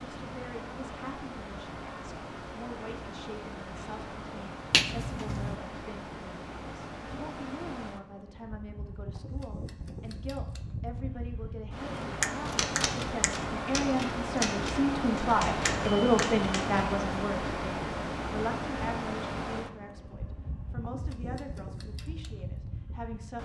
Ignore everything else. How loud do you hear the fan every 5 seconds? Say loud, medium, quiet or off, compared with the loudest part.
medium, medium, loud, loud, medium.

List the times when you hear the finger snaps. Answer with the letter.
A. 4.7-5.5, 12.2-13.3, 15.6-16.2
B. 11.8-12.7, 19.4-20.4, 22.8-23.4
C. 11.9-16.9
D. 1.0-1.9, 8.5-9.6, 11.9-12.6
A.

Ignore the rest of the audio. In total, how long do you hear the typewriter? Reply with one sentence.
You can hear the typewriter for 5 seconds altogether.